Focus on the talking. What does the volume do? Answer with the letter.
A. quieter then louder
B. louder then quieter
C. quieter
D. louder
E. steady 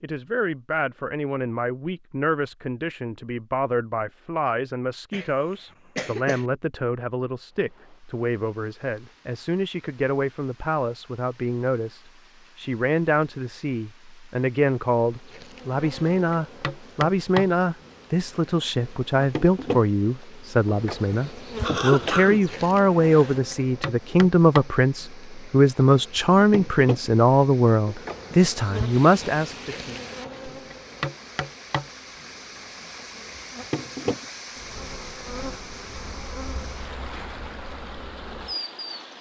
D.